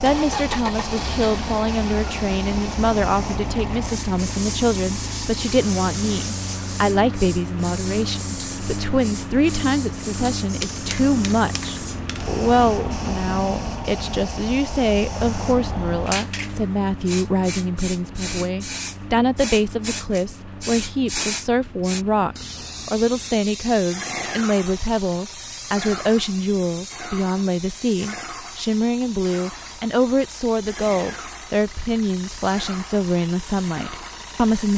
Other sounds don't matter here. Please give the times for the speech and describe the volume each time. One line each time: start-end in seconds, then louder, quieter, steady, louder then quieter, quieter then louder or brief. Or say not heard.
0.0-34.7 steady.